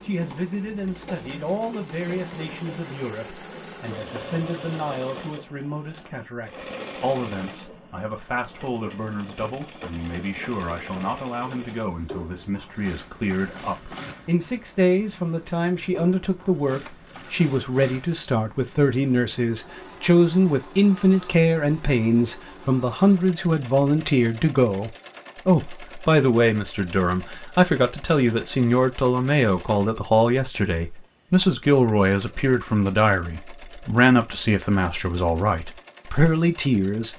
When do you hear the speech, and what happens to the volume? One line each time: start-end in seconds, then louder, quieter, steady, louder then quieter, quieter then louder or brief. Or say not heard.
0.0-37.1 louder.